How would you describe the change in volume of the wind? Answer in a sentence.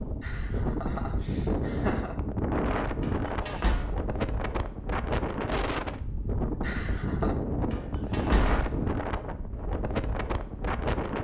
The volume of the wind stays about the same.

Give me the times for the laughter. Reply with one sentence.
The laughter can be heard from 0.2 to 2.1 s and from 6.6 to 7.3 s.